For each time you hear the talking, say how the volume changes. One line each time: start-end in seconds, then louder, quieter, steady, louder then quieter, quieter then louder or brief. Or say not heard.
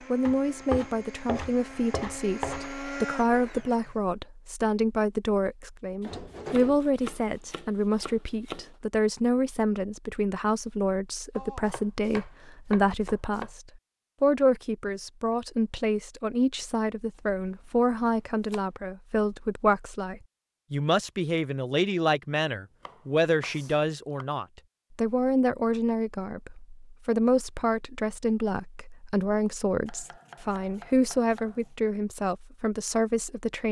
0.1-33.6 steady.